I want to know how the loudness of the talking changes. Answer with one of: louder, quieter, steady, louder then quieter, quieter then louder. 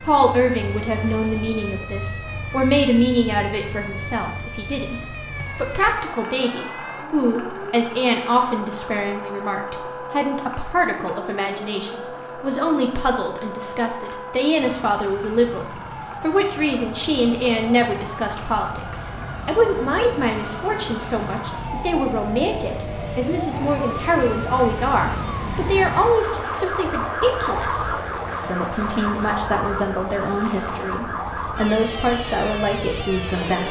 steady.